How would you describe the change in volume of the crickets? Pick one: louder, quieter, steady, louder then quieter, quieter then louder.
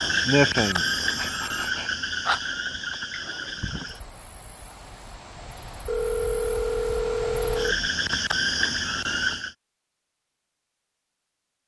quieter then louder.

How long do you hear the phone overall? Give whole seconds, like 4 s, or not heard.
3 s.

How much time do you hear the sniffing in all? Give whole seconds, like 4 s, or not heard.
2 s.